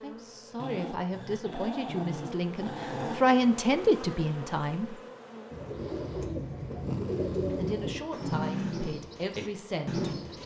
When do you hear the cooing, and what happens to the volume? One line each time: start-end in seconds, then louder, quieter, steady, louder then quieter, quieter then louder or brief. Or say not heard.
5.5-10.4 steady.